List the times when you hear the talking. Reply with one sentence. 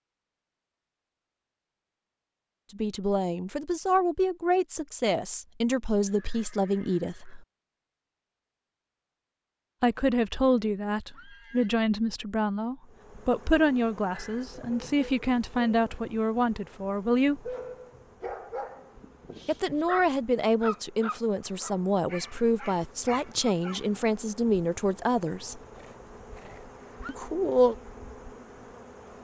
The talking can be heard from 2.7 to 7.5 s, from 9.8 to 17.6 s, from 19.4 to 25.6 s and from 27.1 to 27.8 s.